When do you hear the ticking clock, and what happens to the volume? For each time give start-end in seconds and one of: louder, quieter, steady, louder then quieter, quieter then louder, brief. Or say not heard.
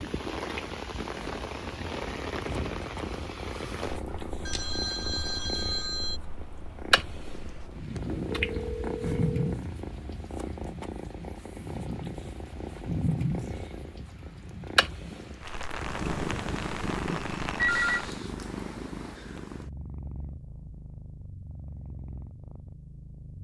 not heard.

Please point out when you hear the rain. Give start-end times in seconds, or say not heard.
0.0-18.2.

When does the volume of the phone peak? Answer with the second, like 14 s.
18 s.